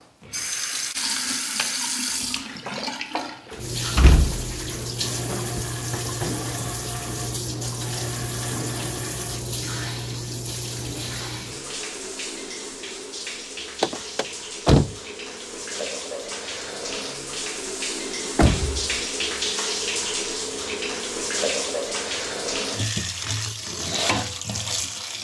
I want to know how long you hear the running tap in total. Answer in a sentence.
The running tap can be heard for 25 seconds in total.